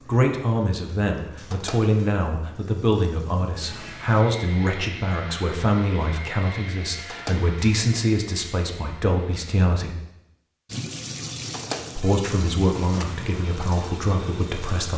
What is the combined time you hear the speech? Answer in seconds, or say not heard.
13 s.